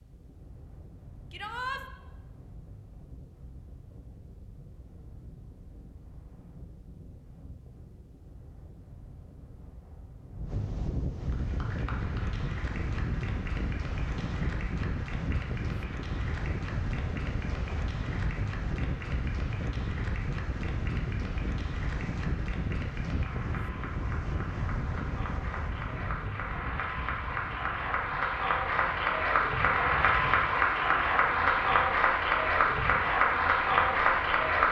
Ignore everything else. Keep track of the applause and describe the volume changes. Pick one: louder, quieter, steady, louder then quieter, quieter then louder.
louder.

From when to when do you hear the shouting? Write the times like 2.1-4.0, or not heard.
1.3-1.9.